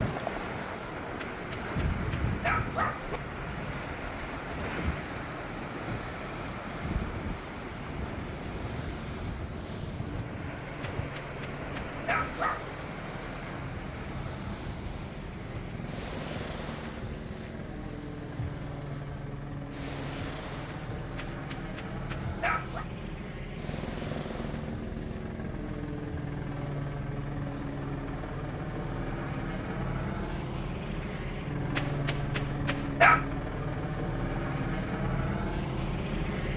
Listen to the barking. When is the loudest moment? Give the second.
33 s.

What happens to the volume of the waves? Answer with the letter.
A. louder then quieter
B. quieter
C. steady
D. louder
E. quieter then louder
B.